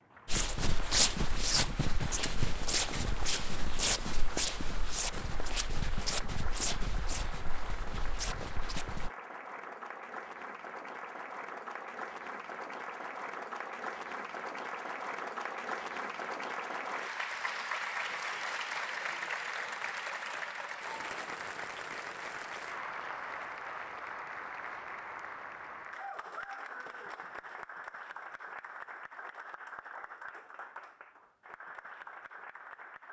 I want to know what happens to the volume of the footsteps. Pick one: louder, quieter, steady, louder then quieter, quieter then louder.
quieter.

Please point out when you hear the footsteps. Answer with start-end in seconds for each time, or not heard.
0.2-9.1.